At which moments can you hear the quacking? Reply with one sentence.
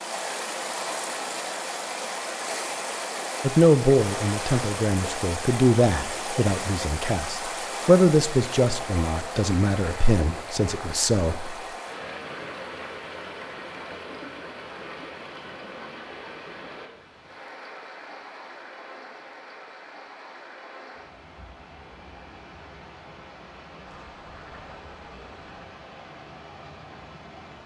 The quacking can be heard from 23.9 to 25.5 s.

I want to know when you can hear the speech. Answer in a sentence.
The speech can be heard from 3.4 to 11.6 s.